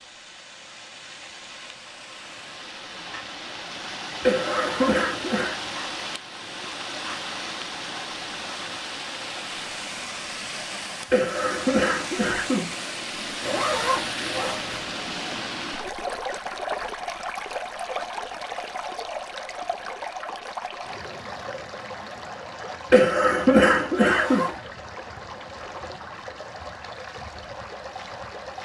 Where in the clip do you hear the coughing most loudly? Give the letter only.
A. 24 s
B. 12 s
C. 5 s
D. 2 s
A.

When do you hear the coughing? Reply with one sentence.
The coughing can be heard from 4.2 to 5.5 s, from 11.1 to 12.8 s and from 22.9 to 24.4 s.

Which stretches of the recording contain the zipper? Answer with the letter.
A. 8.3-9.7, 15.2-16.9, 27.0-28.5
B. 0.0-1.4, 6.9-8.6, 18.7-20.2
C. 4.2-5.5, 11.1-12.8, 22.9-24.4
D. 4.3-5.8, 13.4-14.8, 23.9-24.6
D.